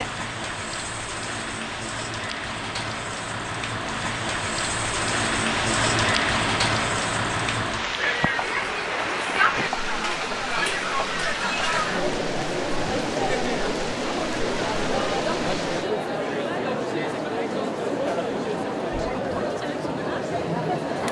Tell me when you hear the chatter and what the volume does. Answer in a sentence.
The chatter can be heard from 7.8 to 21.0 s, at a steady volume.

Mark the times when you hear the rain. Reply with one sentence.
You can hear the rain from 0.0 to 15.9 s.